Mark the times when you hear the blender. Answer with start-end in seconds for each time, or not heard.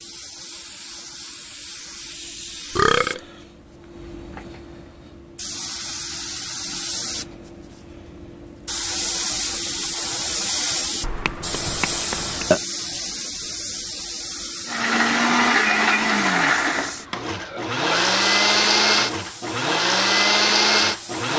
14.7-21.3.